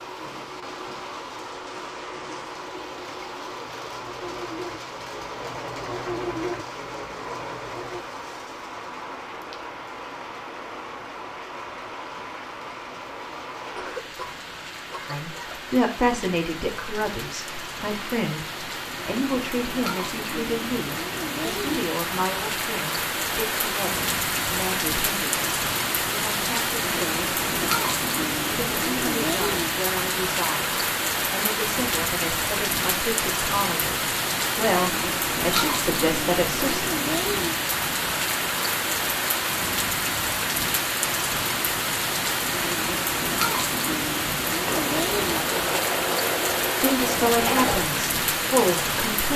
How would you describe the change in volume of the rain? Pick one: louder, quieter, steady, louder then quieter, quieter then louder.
louder.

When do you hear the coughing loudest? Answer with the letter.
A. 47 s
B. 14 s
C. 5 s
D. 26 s
B.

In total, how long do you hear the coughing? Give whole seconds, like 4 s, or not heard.
2 s.